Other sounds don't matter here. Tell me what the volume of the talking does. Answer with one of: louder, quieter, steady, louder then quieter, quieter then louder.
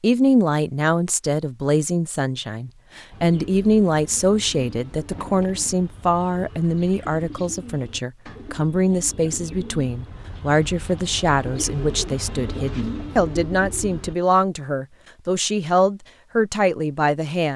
steady.